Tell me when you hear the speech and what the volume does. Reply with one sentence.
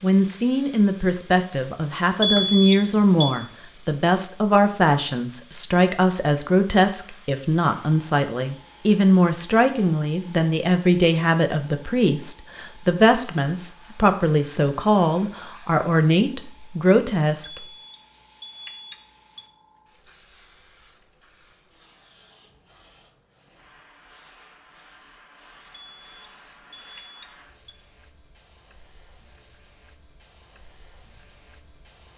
You can hear the speech from 0.0 to 17.6 s, at a steady volume.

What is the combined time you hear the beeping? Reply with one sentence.
You can hear the beeping for 5 seconds altogether.